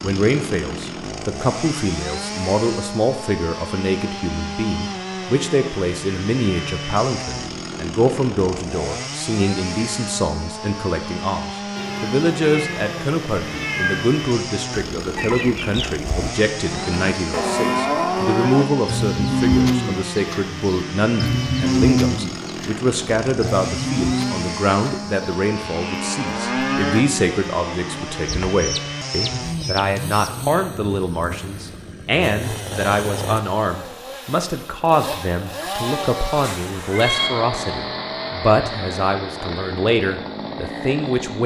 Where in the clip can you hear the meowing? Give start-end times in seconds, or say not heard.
11.8-14.2, 36.4-37.3.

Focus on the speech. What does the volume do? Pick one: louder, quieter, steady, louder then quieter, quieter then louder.
steady.